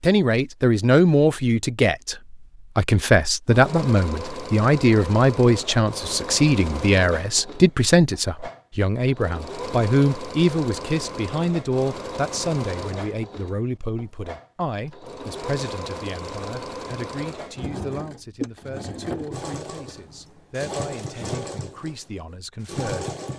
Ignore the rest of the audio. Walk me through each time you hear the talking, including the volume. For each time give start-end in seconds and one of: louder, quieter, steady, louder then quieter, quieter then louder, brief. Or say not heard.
0.0-23.1 quieter.